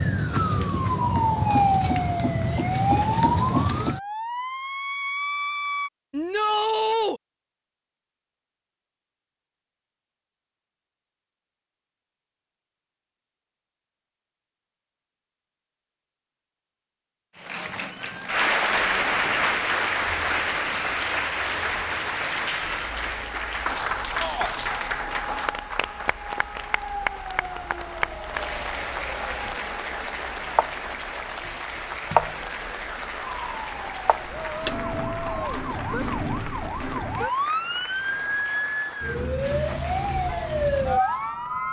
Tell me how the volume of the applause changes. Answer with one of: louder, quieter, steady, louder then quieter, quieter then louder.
quieter.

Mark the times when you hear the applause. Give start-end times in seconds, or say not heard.
17.4-41.6.